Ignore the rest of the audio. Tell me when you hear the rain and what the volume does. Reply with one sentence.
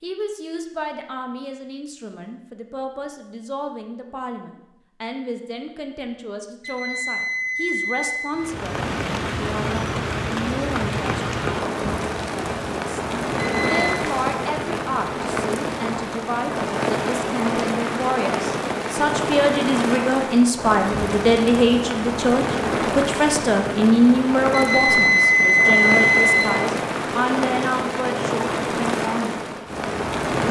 The rain can be heard from 8.3 to 30.4 s, at a steady volume.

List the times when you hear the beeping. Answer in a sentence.
The beeping can be heard from 6.6 to 8.3 s, from 13.3 to 14.0 s and from 24.5 to 26.5 s.